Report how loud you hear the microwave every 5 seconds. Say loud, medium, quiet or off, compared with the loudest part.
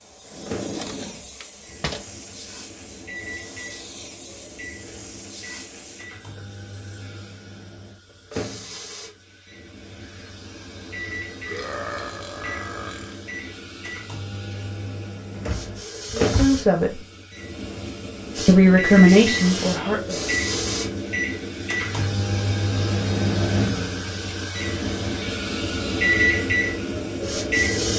quiet, quiet, quiet, medium, loud, loud.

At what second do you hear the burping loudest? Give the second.
12 s.